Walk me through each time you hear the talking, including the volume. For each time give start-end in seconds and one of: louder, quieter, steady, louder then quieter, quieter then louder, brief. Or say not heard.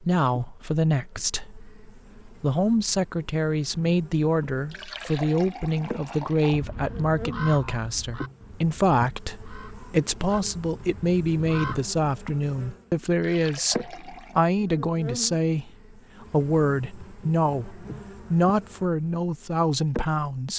0.0-20.5 steady.